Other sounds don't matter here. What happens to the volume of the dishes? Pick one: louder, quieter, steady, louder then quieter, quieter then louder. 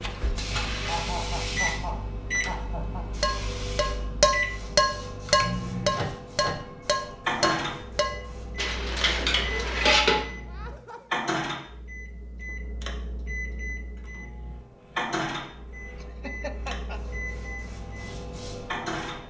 quieter.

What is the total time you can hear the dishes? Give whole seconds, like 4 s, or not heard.
7 s.